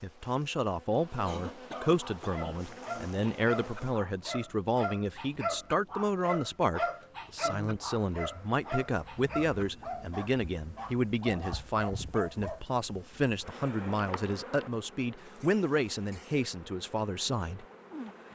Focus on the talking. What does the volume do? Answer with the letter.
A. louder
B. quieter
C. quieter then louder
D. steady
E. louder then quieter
D.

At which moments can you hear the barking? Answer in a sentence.
You can hear the barking from 2.0 to 12.7 s.